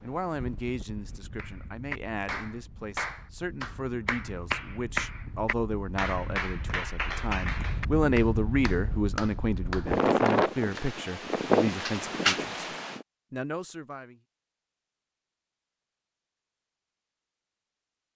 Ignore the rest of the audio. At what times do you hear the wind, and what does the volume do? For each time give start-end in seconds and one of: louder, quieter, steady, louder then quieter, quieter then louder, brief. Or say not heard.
0.0-13.1 louder.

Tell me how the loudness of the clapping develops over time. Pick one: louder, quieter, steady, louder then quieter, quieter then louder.
steady.